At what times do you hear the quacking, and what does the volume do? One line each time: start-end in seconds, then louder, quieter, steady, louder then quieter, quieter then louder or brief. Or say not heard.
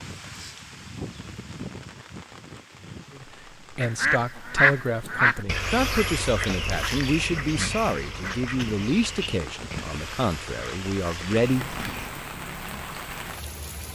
3.8-12.1 quieter.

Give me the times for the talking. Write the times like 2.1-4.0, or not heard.
3.1-11.8.